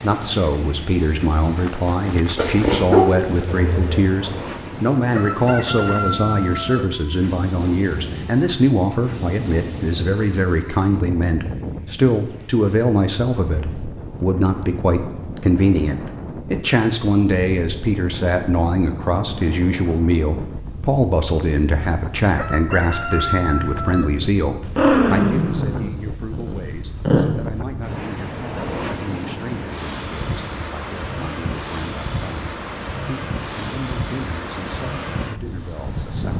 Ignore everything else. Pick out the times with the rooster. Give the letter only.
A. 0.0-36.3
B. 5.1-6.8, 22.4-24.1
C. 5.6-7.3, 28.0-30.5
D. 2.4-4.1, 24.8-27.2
B.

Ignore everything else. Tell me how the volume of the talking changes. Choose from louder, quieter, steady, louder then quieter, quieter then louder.
quieter.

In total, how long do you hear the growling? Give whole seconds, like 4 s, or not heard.
4 s.